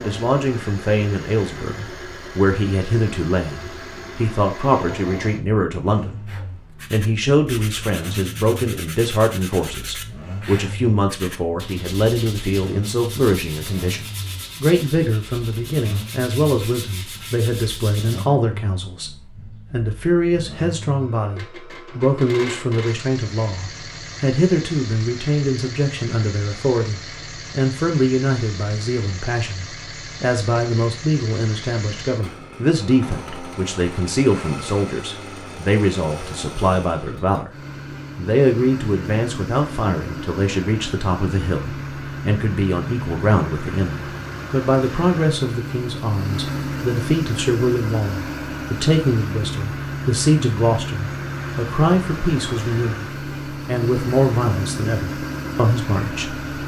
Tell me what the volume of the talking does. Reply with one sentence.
The volume of the talking stays about the same.